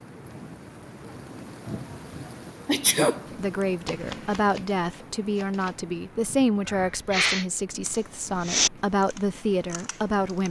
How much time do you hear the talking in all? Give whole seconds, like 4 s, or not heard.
7 s.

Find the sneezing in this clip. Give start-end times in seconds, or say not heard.
2.6-3.2, 6.7-7.5.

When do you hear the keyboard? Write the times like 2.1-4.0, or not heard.
7.8-10.4.